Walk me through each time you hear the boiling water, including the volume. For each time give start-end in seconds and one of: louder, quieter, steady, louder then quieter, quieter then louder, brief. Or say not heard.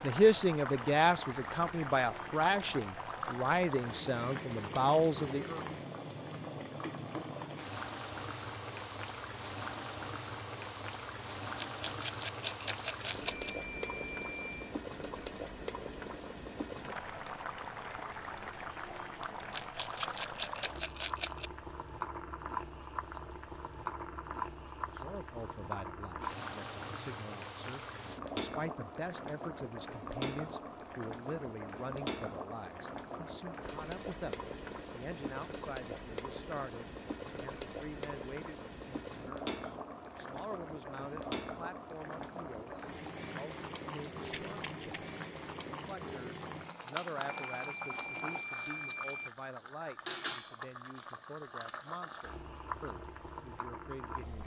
0.0-54.4 steady.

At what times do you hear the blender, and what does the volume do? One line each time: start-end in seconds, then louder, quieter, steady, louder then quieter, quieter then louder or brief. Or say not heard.
not heard.